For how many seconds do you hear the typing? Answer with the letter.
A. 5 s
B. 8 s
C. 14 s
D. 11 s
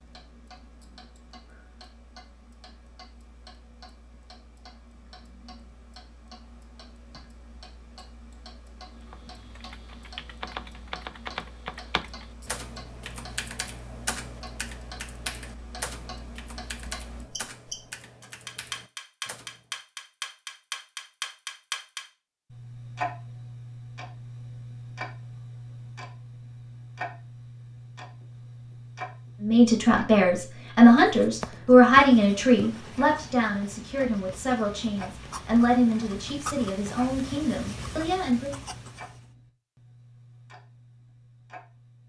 D.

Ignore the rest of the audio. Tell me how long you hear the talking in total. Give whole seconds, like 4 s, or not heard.
9 s.